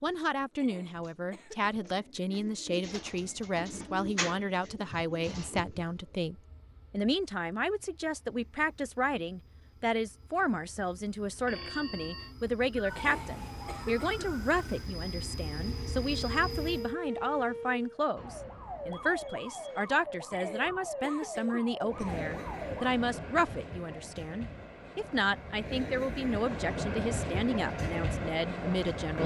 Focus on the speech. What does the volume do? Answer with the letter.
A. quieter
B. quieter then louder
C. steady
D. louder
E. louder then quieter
C.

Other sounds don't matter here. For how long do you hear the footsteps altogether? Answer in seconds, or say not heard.
not heard.